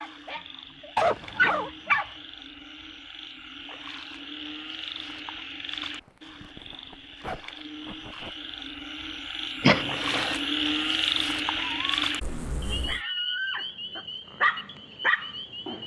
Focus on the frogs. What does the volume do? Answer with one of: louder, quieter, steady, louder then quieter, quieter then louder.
louder then quieter.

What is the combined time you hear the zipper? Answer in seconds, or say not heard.
4 s.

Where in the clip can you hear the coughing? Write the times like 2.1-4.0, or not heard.
9.6-10.4.